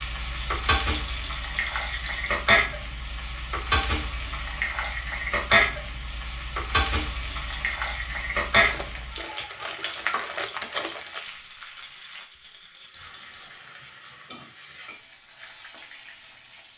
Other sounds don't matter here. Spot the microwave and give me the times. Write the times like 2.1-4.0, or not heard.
not heard.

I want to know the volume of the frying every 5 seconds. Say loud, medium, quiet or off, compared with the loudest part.
loud, loud, quiet, quiet.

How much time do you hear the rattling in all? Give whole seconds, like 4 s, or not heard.
6 s.